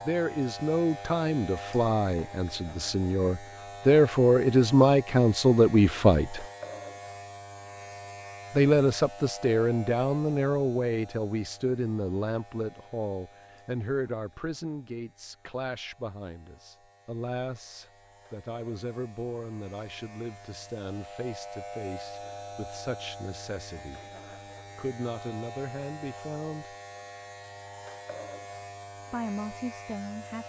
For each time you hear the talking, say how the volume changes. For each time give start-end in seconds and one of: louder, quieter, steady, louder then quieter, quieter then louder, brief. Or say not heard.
0.0-6.5 louder
8.5-24.0 quieter
24.8-26.8 brief
29.1-30.4 brief.